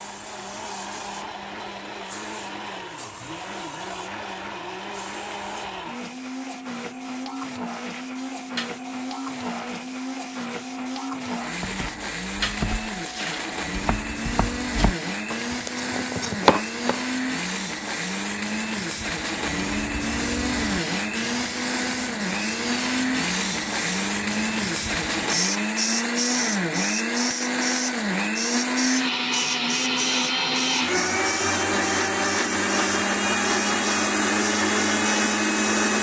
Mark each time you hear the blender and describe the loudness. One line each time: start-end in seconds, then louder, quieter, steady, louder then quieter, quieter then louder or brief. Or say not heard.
0.0-35.9 louder.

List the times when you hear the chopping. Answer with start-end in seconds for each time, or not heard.
11.5-17.0.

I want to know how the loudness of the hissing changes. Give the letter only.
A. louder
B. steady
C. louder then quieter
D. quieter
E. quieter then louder
A.